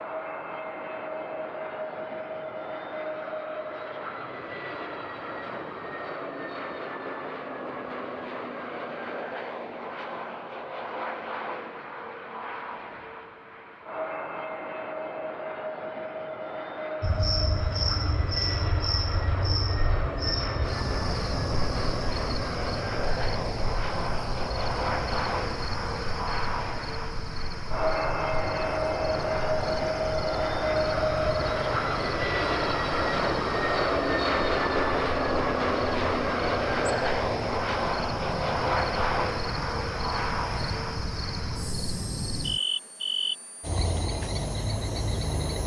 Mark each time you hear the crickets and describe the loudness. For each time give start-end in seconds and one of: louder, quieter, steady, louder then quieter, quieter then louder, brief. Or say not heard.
17.0-45.6 quieter then louder.